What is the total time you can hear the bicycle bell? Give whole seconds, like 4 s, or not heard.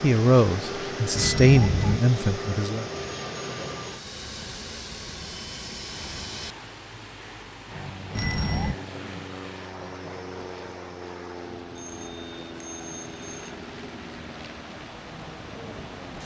3 s.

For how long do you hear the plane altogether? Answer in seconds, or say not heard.
16 s.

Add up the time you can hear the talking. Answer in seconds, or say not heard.
3 s.